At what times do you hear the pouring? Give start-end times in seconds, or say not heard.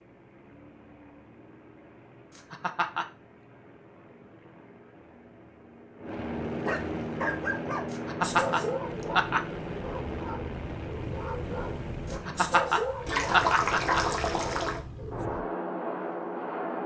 13.1-14.8.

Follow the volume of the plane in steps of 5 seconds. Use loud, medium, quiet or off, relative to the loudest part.
quiet, loud, medium, loud.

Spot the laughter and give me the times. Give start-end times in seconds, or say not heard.
2.4-3.0, 7.9-9.4, 12.1-14.1.